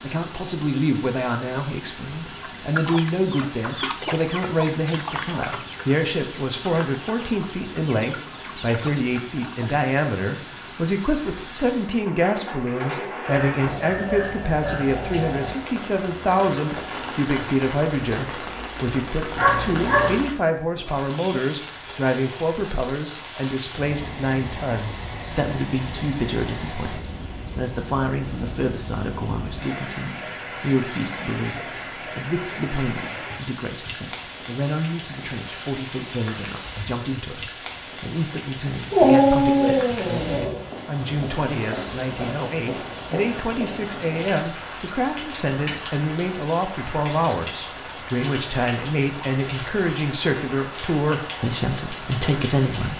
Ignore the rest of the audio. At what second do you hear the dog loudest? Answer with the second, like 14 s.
39 s.